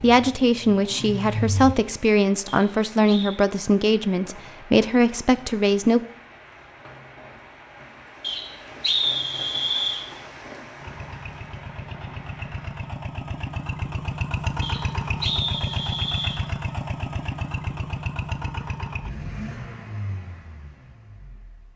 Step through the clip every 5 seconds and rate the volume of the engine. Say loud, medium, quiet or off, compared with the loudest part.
loud, off, loud, loud, quiet.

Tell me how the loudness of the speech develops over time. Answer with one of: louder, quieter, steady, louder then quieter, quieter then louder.
steady.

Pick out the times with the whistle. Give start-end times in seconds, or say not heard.
2.5-3.3, 8.2-10.1, 14.6-16.4.